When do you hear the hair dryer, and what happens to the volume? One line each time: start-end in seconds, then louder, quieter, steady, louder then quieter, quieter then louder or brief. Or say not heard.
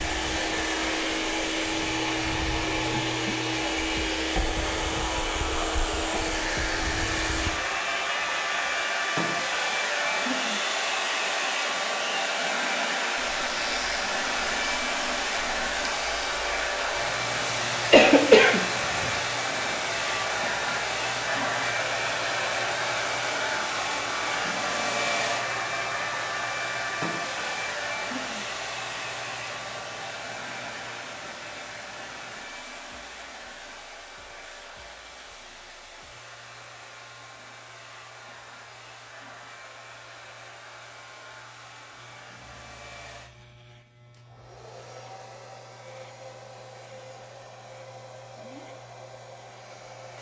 0.0-50.1 quieter.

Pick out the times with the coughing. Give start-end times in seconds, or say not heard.
17.9-19.1.